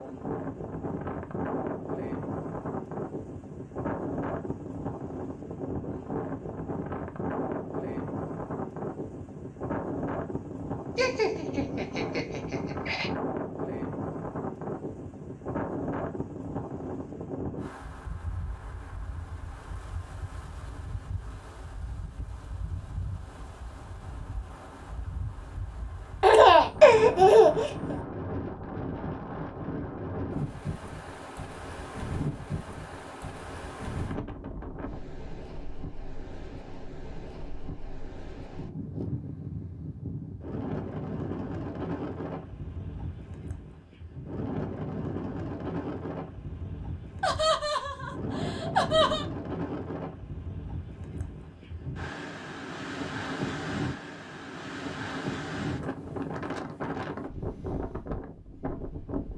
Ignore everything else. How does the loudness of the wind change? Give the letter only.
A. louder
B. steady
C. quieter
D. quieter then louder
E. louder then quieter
B.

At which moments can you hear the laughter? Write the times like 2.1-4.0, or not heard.
10.9-13.1, 26.2-27.9, 47.2-49.2.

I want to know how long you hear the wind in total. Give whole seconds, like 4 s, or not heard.
59 s.